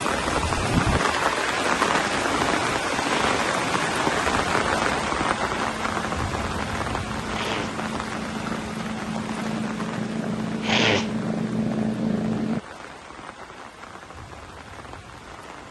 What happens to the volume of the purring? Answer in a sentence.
The loudness of the purring goes up.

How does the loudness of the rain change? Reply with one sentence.
The volume of the rain goes down.